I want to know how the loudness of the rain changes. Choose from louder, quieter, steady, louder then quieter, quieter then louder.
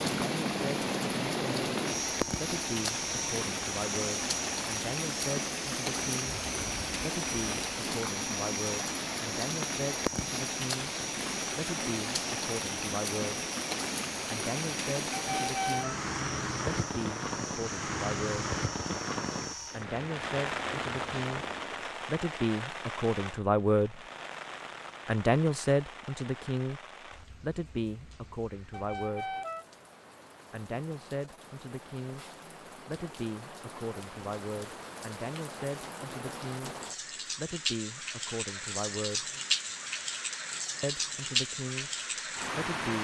quieter then louder.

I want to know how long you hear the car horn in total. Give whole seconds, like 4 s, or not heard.
2 s.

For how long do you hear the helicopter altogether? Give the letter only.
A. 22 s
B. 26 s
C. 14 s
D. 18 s
A.